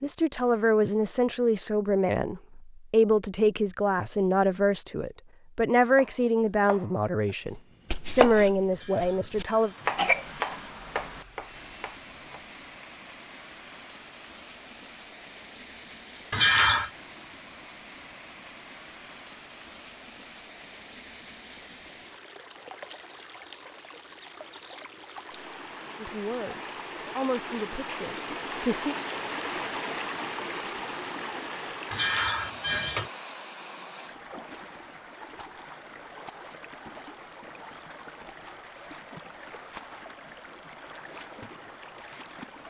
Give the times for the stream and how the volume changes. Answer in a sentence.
The stream can be heard from 9.4 to 42.6 s, getting louder then quieter.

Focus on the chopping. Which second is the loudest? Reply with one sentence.
The loudest moment of the chopping is at 8 seconds.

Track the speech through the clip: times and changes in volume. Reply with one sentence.
The speech can be heard from 0.0 to 9.7 s, at a steady volume; and briefly from 26.0 to 28.9 s.